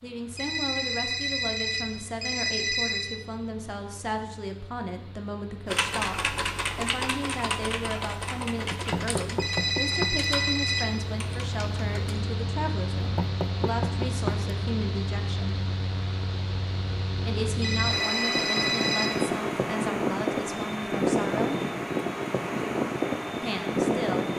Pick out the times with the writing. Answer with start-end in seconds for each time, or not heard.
not heard.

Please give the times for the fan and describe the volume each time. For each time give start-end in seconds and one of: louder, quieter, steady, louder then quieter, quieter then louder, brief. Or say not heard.
0.0-24.3 louder.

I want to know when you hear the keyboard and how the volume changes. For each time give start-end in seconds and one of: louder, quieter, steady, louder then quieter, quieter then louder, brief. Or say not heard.
5.7-12.2 quieter.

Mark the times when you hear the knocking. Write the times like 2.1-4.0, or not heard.
8.7-10.2, 12.9-14.5.